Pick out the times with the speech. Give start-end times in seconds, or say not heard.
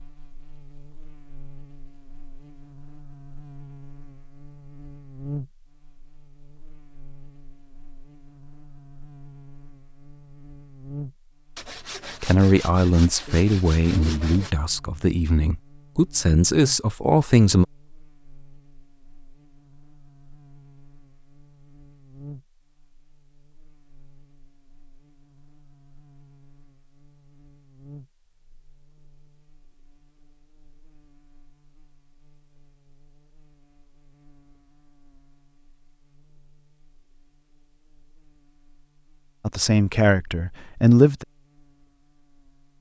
12.2-17.6, 39.5-41.2.